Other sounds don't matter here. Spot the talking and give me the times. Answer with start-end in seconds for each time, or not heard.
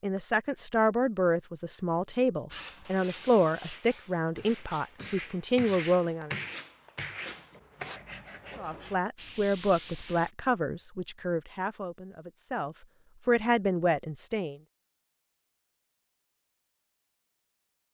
0.0-6.3, 8.6-14.6.